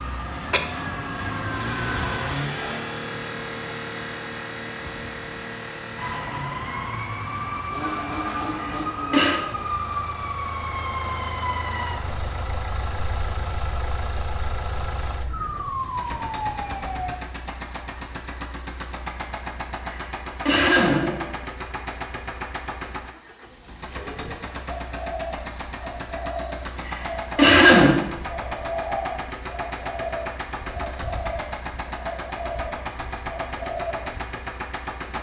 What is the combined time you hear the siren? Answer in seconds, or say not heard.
14 s.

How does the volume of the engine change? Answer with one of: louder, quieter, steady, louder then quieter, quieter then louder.
steady.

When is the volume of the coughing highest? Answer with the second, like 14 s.
28 s.